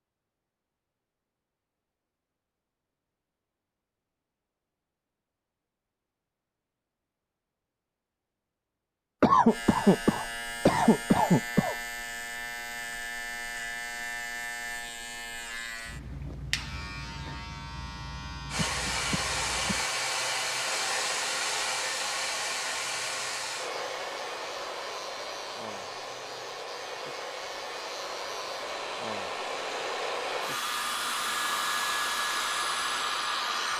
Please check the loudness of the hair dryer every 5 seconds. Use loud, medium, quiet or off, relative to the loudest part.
off, off, off, loud, loud, medium, loud.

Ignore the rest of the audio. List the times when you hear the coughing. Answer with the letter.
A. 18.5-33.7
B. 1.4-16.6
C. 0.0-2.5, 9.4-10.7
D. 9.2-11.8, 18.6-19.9
D.